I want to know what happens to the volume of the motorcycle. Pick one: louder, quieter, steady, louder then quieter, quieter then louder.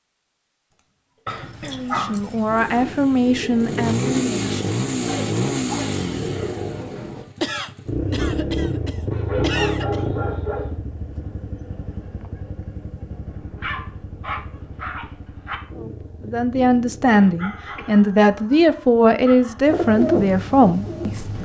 quieter.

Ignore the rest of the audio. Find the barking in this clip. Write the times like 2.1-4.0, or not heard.
1.2-2.6, 5.0-6.5, 9.1-10.8, 13.2-15.6, 17.4-19.6.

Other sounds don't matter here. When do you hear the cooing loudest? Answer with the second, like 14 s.
20 s.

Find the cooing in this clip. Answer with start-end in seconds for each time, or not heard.
2.5-7.2, 19.6-21.4.